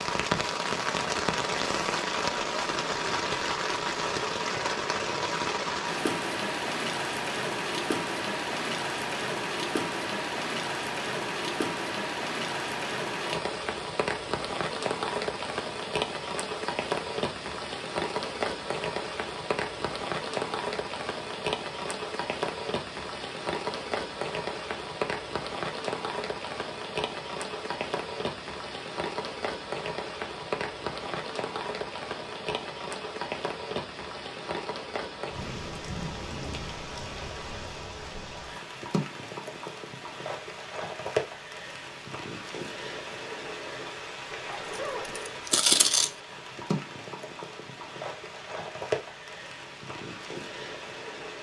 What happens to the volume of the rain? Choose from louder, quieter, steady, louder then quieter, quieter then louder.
quieter.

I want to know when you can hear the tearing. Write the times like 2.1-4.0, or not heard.
44.5-46.1.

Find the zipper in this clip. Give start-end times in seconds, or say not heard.
44.2-45.2.